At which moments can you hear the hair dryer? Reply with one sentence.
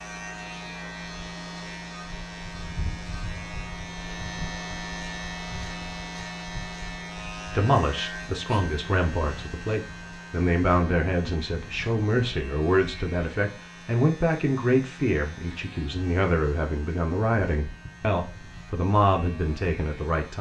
You can't hear the hair dryer here.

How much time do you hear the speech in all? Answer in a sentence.
The speech can be heard for 13 seconds in total.